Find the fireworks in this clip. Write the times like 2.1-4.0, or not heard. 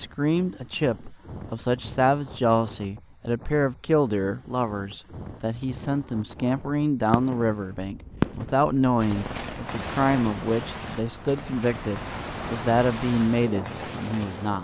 6.3-14.5.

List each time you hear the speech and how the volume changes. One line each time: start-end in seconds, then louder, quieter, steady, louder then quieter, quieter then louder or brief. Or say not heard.
0.0-14.5 steady.